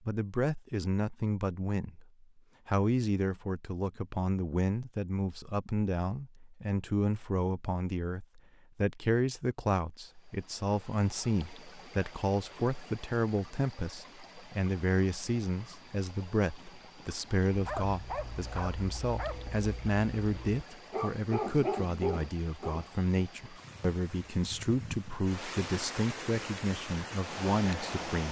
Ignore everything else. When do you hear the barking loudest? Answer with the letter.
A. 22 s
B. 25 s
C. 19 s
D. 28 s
A.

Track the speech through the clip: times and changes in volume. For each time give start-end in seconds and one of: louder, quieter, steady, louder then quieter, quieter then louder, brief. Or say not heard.
0.1-28.2 steady.